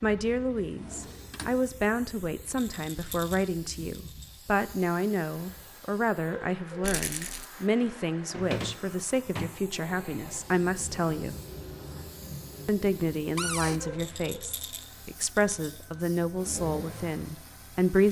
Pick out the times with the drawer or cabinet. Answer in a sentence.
The drawer or cabinet can be heard from 0.6 to 1.6 s, from 8.3 to 9.6 s and from 13.3 to 13.8 s.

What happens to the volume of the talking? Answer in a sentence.
The volume of the talking stays about the same.